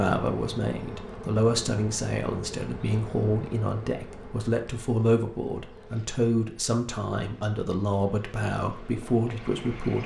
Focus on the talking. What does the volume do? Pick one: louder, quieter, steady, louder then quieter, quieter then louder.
steady.